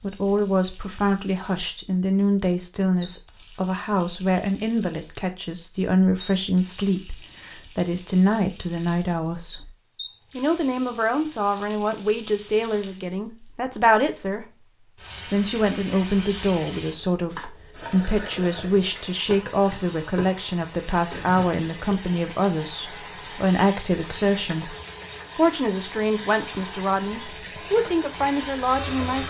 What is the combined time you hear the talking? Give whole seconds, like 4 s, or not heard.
27 s.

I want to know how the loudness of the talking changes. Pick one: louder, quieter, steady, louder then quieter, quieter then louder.
steady.